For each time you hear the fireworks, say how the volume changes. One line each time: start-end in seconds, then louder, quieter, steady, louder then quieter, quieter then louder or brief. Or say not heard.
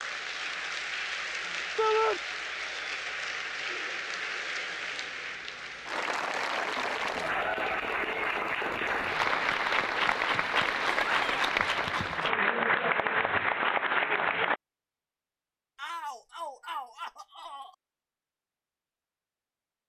not heard.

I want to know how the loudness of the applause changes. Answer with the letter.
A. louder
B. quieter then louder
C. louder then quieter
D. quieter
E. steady
A.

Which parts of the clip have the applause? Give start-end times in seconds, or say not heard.
0.0-14.6.